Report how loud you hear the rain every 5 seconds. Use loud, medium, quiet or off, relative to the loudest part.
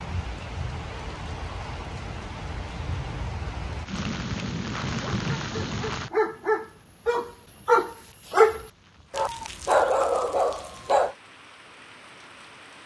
loud, loud, quiet.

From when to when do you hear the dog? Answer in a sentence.
The dog can be heard from 5.0 to 11.2 s.